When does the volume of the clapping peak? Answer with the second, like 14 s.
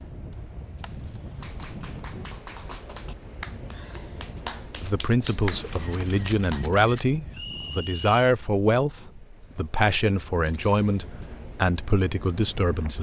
5 s.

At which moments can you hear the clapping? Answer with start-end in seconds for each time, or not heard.
1.4-6.6.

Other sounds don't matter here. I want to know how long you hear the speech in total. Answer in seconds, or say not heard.
8 s.